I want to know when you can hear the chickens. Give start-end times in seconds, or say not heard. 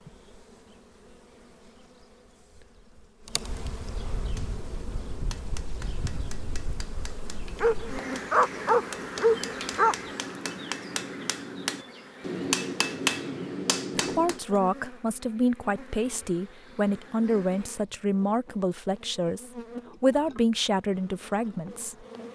not heard.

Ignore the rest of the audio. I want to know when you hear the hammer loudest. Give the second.
13 s.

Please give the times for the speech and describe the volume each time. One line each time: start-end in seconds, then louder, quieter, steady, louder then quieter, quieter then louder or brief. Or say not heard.
13.9-22.1 steady.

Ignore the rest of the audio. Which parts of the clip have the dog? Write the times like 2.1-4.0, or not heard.
7.5-10.1.